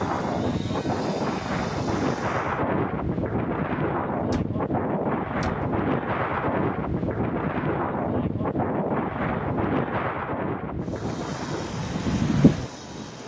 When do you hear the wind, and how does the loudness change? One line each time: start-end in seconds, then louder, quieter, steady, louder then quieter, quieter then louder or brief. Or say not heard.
0.0-13.2 steady.